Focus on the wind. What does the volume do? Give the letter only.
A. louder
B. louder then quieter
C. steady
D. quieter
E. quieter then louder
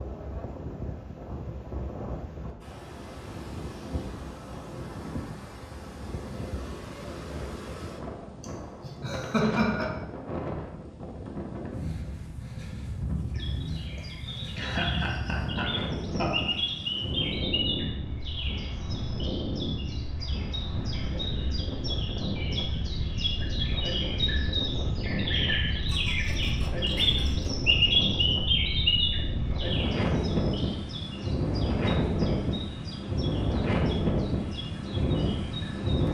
A.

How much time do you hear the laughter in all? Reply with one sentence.
You can hear the laughter for 6 seconds altogether.